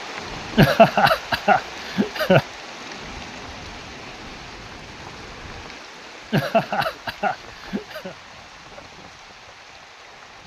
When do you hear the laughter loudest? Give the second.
1 s.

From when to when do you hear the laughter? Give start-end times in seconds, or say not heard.
0.6-2.5, 6.3-8.2.